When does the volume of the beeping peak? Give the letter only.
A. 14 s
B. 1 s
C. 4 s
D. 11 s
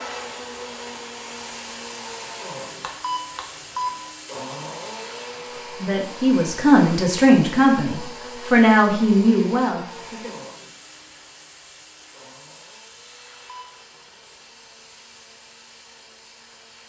C.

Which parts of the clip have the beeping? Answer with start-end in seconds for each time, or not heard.
3.0-4.0, 13.4-13.8.